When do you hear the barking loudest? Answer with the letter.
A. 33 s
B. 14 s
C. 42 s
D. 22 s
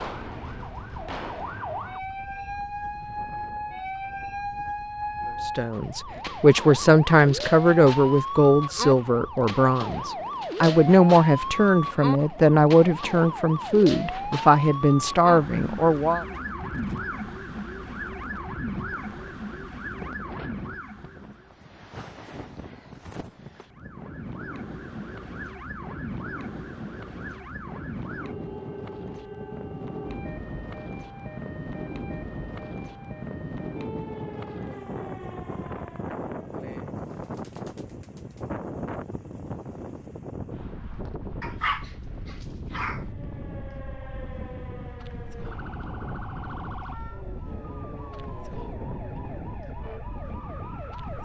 C.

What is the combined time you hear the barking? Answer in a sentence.
You can hear the barking for 2 seconds altogether.